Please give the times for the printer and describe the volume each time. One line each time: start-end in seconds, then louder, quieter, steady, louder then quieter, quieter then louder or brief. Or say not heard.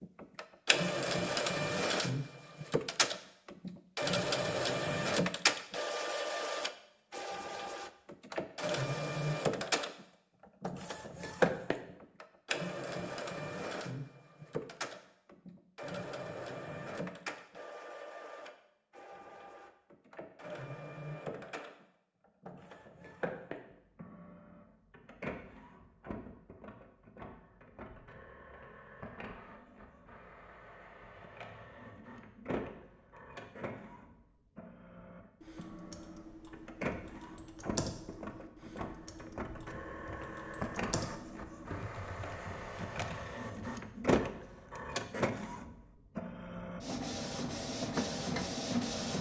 0.0-49.1 quieter then louder.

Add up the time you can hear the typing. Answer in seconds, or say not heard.
8 s.